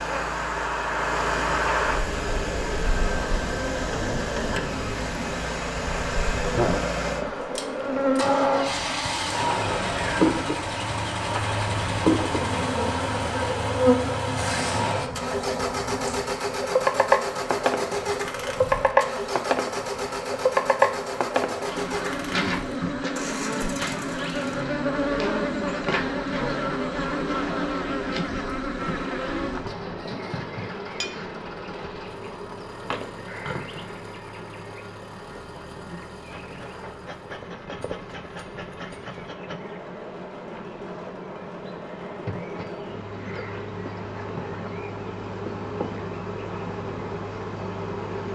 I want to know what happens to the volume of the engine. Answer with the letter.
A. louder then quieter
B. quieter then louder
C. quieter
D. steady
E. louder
C.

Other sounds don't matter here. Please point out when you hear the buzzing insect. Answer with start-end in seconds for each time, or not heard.
0.0-48.3.